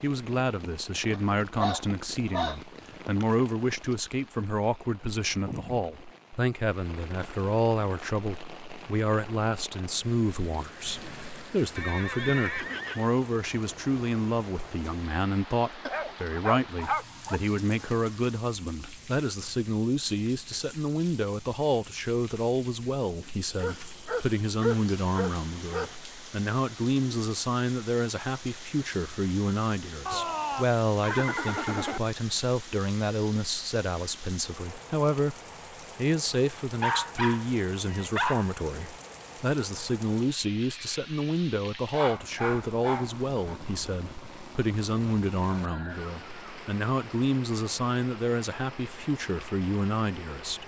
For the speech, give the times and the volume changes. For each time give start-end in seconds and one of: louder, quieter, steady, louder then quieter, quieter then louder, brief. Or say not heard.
0.0-35.4 steady
36.0-50.6 steady.